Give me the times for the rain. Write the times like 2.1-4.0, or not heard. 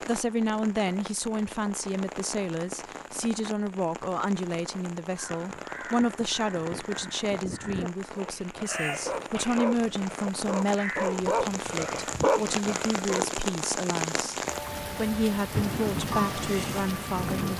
0.0-17.5.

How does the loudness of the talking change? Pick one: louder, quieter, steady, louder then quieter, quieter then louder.
steady.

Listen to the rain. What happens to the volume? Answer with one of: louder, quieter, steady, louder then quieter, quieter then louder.
louder.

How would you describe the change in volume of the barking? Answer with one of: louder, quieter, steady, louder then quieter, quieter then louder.
louder.